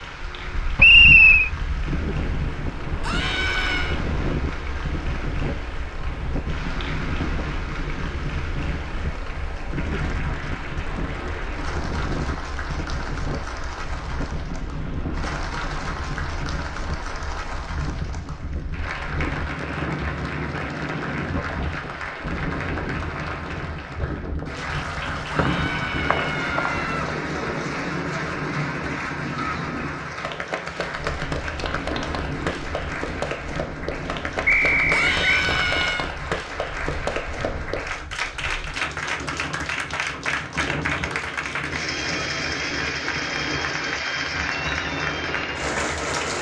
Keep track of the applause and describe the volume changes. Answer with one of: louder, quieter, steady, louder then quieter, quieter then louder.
louder.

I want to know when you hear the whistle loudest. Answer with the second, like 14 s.
1 s.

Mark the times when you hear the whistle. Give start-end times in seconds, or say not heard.
0.8-1.5, 25.4-26.7, 34.5-35.5.